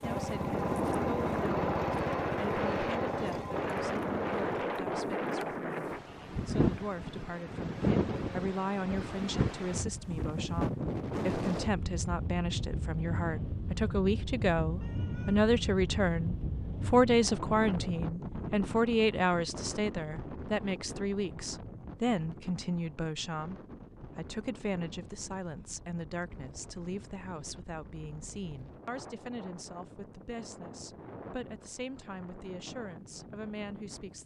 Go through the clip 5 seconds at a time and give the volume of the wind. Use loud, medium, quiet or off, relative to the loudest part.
loud, loud, loud, medium, quiet, quiet, quiet.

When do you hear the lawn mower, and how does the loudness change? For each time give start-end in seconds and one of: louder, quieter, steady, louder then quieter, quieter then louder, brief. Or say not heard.
0.0-4.7 quieter.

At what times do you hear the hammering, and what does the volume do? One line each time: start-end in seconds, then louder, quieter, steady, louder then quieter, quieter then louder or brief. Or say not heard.
not heard.